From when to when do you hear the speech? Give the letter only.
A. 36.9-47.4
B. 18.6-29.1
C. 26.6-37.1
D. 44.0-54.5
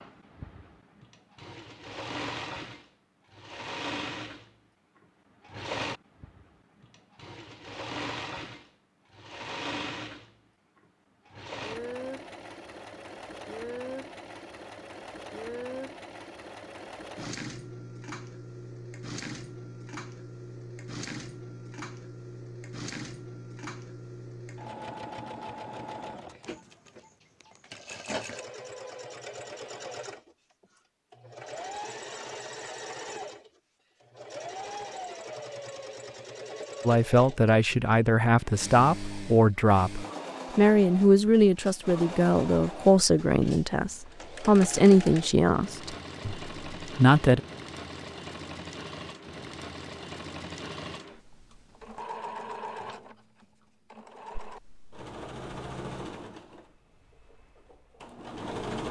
A.